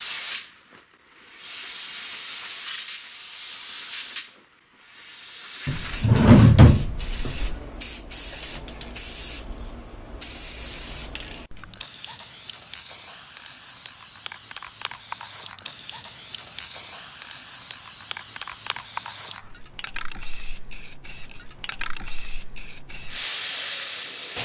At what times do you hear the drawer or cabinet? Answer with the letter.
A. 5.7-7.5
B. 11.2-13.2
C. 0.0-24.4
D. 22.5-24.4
A.